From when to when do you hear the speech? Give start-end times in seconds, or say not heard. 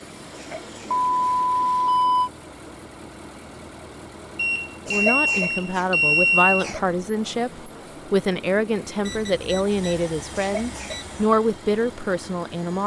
4.8-12.8.